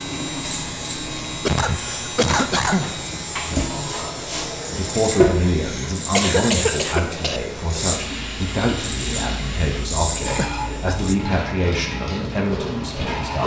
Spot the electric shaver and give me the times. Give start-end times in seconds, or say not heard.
0.0-11.2.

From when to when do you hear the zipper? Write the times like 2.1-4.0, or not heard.
not heard.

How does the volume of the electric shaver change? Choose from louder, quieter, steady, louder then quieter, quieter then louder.
steady.